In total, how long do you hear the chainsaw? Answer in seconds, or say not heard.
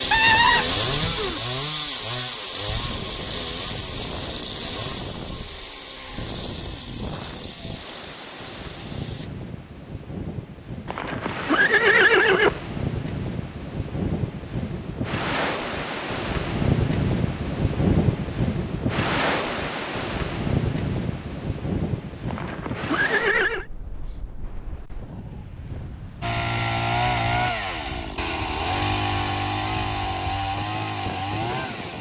15 s.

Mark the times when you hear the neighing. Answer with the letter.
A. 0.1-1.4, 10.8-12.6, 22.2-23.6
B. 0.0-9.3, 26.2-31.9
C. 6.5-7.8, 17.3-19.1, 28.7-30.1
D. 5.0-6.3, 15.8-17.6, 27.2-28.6
A.